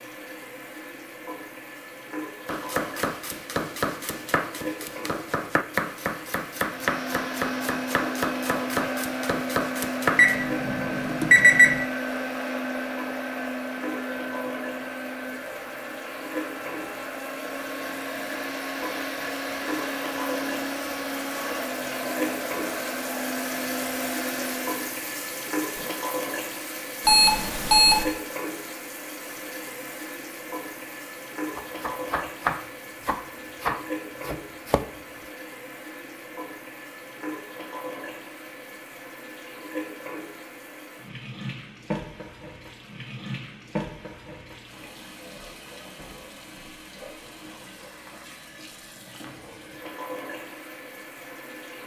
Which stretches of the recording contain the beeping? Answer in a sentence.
The beeping can be heard from 10.2 to 11.8 s and from 27.1 to 28.1 s.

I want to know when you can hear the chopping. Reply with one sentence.
The chopping can be heard from 2.5 to 10.4 s and from 31.6 to 34.9 s.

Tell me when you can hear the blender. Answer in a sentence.
You can hear the blender from 6.5 to 25.0 s.